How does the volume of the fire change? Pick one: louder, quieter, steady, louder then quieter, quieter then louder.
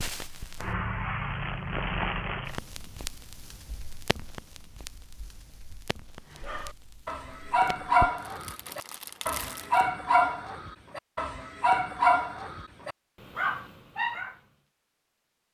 quieter then louder.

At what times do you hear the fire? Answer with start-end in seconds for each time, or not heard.
0.0-9.8.